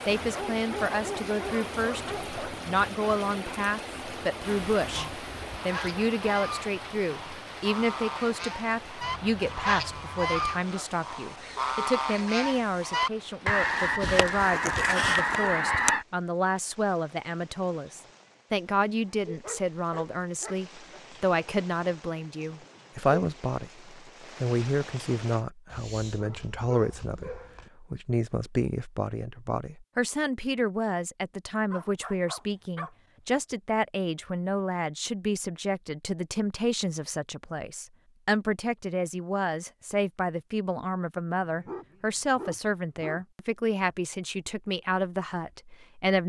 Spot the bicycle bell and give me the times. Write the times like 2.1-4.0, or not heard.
not heard.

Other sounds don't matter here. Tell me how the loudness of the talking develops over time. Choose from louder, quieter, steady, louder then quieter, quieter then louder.
steady.